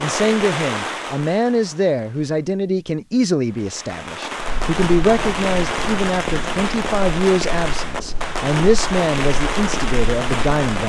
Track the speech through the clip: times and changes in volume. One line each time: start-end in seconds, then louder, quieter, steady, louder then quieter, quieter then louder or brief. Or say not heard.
0.0-10.8 steady.